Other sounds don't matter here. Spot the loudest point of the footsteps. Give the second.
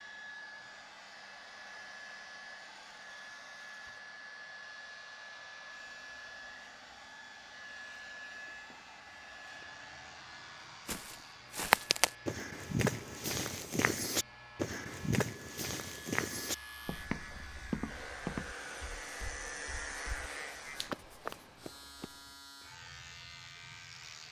12 s.